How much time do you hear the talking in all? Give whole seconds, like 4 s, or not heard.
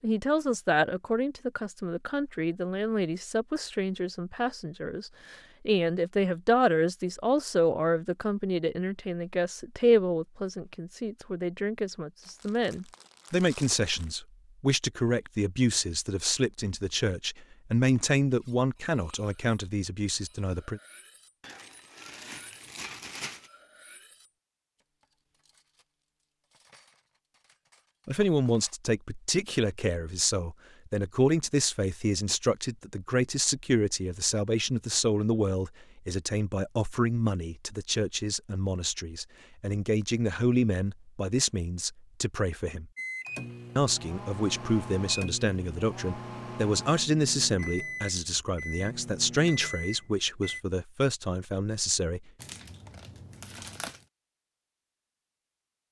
44 s.